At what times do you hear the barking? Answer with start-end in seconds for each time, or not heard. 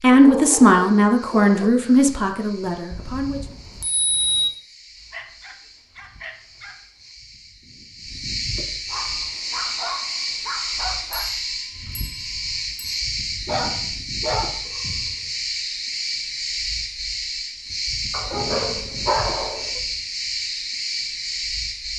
0.1-1.7, 5.1-6.8, 8.8-11.3, 13.4-15.3, 18.1-19.8.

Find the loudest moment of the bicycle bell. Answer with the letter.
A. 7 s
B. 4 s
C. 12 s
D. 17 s
B.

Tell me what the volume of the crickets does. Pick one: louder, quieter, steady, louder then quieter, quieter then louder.
louder.